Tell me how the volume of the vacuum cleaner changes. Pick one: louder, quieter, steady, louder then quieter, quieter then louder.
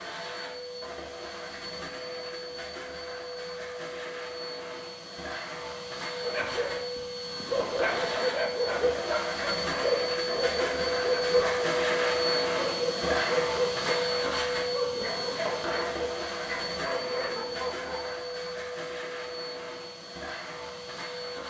louder then quieter.